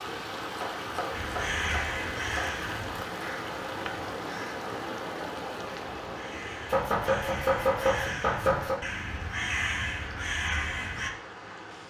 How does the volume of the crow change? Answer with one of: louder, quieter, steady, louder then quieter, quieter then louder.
quieter then louder.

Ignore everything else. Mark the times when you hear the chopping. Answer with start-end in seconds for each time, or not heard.
0.6-2.6, 6.7-8.8.